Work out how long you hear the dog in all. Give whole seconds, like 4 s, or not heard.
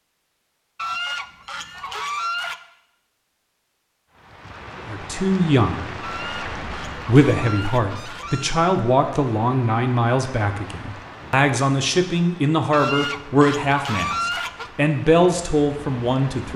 not heard.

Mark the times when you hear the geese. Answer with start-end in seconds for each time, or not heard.
0.8-2.5, 6.0-8.6, 12.7-14.7.